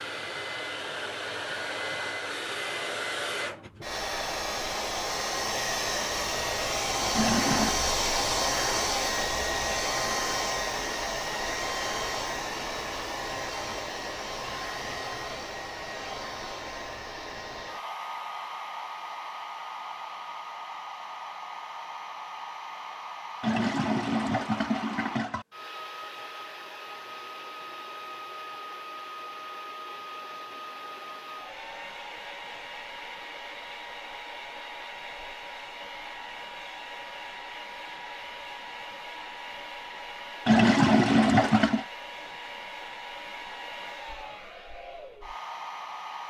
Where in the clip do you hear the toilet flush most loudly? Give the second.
41 s.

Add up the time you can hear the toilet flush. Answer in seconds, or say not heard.
4 s.